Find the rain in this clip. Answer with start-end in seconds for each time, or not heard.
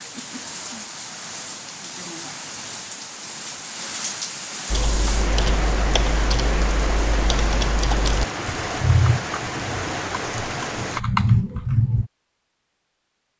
0.0-11.0.